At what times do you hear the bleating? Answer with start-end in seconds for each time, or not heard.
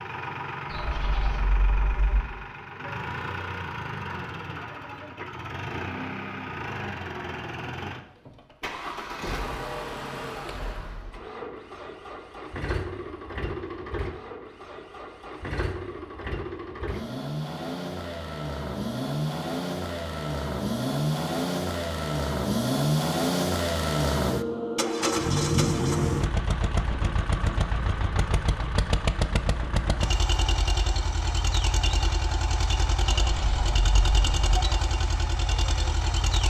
0.7-2.2, 33.0-34.4.